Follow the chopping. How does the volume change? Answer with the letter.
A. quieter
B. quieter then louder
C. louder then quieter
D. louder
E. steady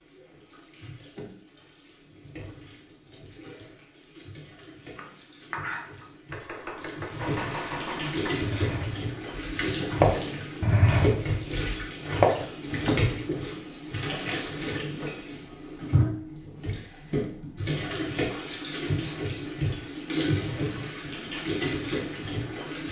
D.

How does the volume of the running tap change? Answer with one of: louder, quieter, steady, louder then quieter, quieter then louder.
louder.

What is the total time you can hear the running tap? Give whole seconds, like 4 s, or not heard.
23 s.